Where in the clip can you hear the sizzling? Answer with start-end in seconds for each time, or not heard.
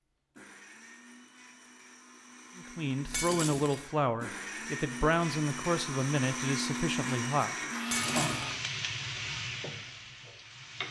7.8-10.8.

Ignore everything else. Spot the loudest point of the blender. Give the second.
7 s.